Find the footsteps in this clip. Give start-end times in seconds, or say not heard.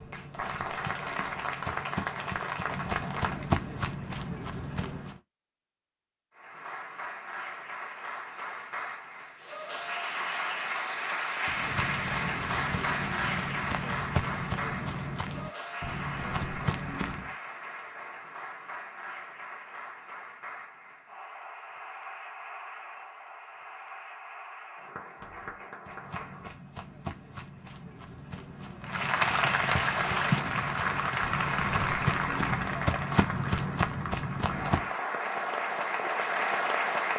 0.0-5.2, 11.4-17.3, 25.9-34.9.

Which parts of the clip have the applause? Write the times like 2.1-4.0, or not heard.
0.0-3.6, 6.3-26.6, 28.8-37.1.